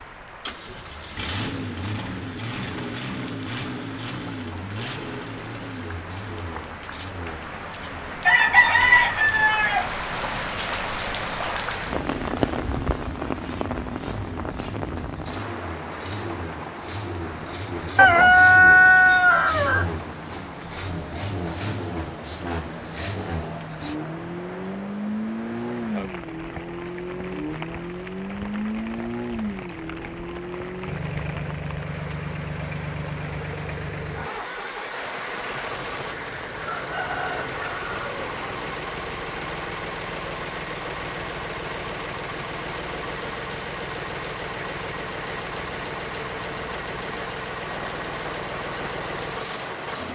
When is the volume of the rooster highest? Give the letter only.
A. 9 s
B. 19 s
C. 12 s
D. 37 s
B.